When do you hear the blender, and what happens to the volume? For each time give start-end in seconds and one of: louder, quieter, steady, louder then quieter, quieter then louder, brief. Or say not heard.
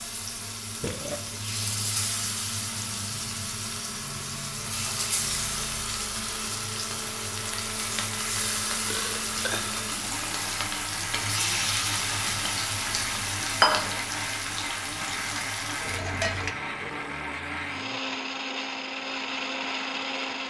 0.0-20.4 louder.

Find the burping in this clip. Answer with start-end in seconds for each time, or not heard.
0.8-1.4, 8.8-9.8, 15.8-18.1.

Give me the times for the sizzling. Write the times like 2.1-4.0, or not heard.
0.0-16.6.